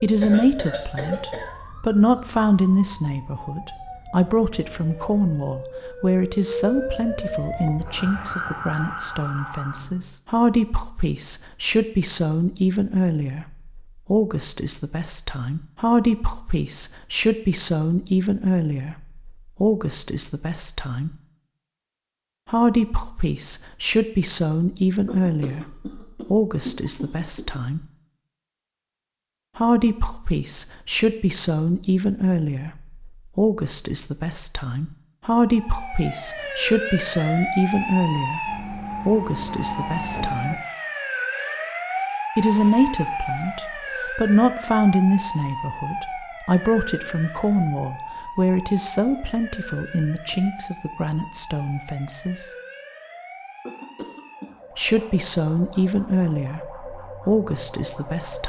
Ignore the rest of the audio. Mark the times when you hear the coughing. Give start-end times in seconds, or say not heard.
0.2-1.6, 25.1-27.6, 53.6-54.6.